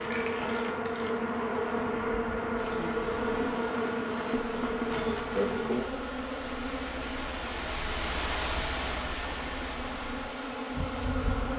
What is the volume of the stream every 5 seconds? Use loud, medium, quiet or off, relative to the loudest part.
medium, loud, medium.